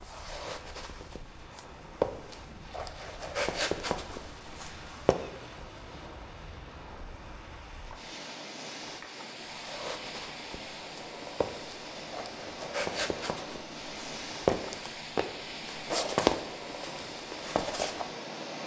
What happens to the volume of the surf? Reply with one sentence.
The loudness of the surf goes up.